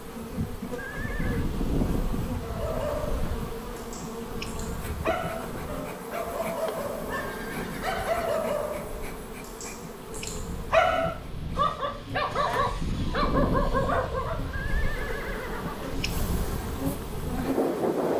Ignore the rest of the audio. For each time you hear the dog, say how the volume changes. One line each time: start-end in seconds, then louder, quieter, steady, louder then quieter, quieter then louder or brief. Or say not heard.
2.4-14.6 louder.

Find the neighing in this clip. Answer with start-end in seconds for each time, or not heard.
0.8-1.4, 7.1-8.4, 14.5-15.9.